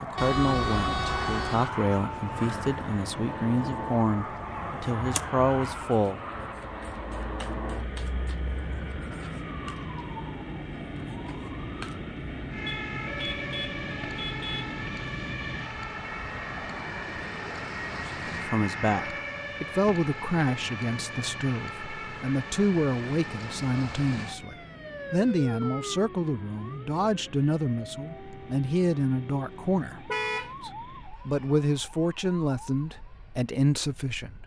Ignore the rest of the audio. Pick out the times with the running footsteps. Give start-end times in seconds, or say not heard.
not heard.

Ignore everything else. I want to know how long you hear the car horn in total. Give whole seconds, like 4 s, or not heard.
4 s.